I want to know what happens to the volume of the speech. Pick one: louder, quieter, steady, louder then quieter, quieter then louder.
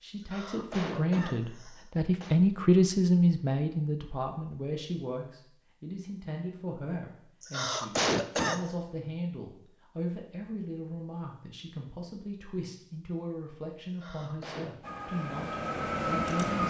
quieter.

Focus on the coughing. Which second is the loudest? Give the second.
8 s.